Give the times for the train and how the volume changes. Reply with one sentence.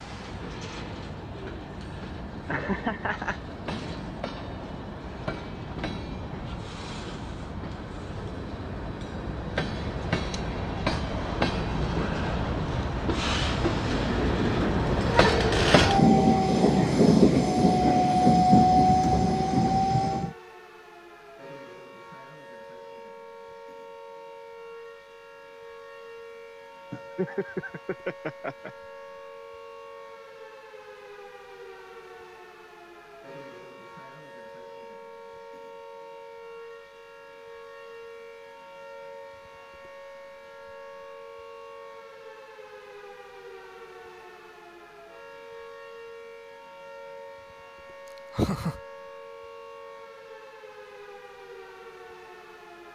The train can be heard from 0.0 to 20.4 s, getting louder.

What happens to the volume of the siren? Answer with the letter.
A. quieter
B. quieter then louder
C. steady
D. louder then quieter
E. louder
C.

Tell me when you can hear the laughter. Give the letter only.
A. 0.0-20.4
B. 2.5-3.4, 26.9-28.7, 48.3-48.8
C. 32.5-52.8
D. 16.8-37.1
B.